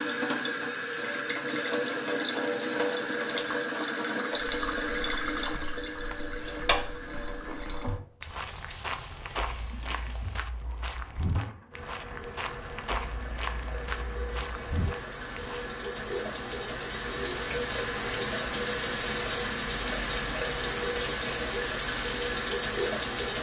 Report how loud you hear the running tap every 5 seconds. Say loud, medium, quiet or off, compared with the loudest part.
loud, medium, quiet, loud, loud.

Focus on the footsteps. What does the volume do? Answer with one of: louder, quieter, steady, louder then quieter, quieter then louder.
louder.